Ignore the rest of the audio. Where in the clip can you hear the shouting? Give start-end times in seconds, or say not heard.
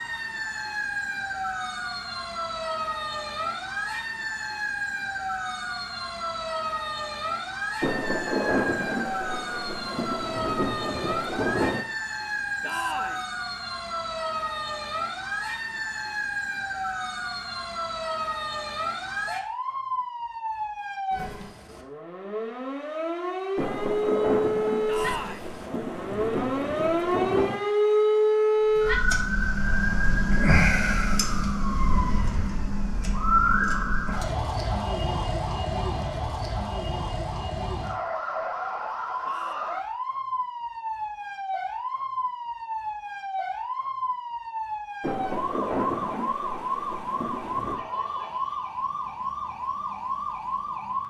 12.6-13.2, 24.9-25.5, 39.2-39.9.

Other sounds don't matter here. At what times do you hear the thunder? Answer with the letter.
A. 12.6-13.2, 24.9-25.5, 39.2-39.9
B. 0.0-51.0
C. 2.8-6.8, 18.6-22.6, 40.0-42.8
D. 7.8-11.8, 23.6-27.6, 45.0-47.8
D.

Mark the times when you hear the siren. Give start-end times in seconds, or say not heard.
0.0-51.0.